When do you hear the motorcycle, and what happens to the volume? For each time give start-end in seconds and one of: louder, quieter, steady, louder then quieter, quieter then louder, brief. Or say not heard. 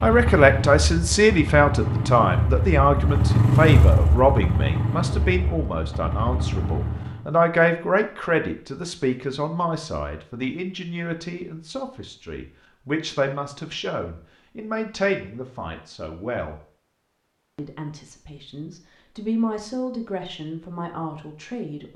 0.0-7.2 louder then quieter.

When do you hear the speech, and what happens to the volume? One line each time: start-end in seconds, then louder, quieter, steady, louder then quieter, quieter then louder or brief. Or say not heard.
0.0-16.6 quieter
17.6-21.9 louder then quieter.